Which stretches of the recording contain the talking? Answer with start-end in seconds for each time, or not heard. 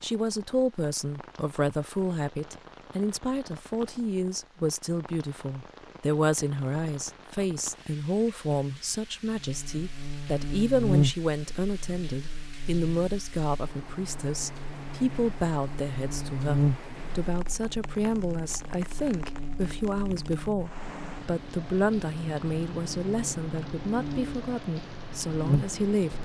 0.0-26.1.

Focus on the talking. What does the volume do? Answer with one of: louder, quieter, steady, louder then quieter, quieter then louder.
steady.